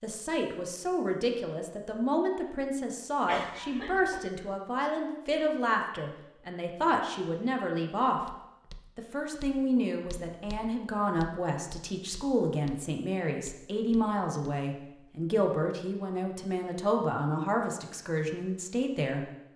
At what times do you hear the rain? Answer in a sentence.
The rain can't be heard in this clip.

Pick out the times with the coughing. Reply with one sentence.
The coughing can be heard from 3.2 to 4.3 s.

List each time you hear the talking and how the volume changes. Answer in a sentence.
You can hear the talking from 0.0 to 8.2 s, at a steady volume; and from 8.9 to 19.2 s, at a steady volume.